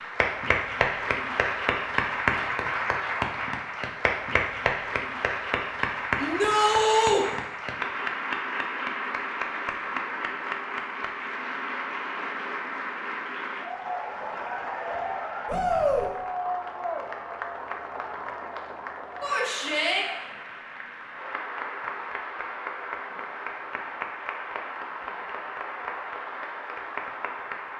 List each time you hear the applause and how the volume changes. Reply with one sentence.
You can hear the applause from 0.0 to 27.7 s, getting quieter.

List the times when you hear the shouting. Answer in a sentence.
You can hear the shouting from 6.2 to 7.2 s, from 15.4 to 16.1 s and from 19.2 to 20.1 s.